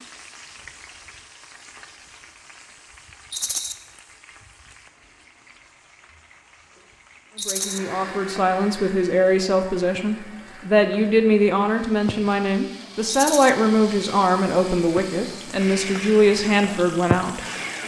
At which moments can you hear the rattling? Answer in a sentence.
The rattling can be heard from 3.3 to 3.8 s, from 7.3 to 7.8 s and from 13.1 to 13.5 s.